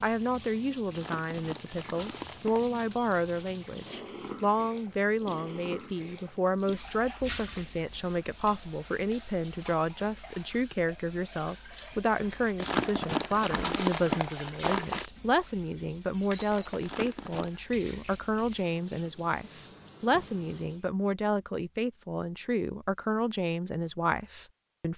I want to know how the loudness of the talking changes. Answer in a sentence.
The loudness of the talking stays about the same.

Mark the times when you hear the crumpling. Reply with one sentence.
You can hear the crumpling from 0.9 to 2.8 s, from 12.6 to 15.1 s and from 16.8 to 17.5 s.